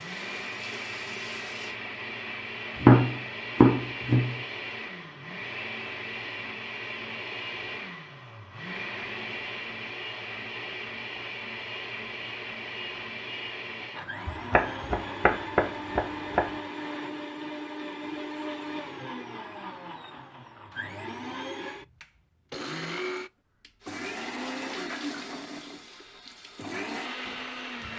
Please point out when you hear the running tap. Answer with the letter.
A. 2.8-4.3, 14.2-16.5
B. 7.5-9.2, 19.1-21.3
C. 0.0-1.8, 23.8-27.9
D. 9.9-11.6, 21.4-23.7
C.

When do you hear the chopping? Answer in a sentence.
You can hear the chopping from 2.8 to 4.3 s and from 14.2 to 16.5 s.